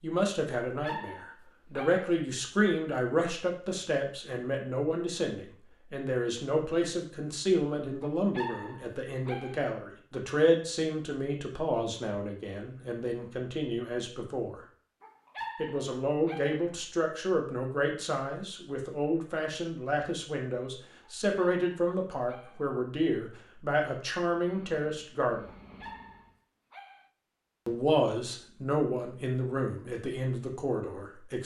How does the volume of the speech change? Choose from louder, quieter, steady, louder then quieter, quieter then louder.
steady.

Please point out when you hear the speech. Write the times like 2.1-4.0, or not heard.
0.0-14.6, 15.6-25.4, 27.6-31.4.